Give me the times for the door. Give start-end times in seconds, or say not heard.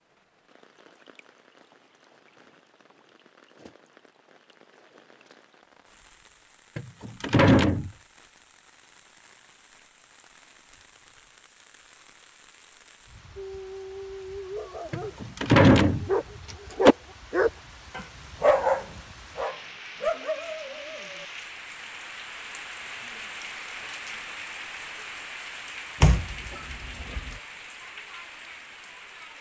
6.8-7.9, 14.9-16.9, 26.0-27.4.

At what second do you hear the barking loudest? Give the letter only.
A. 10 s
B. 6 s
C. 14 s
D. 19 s
D.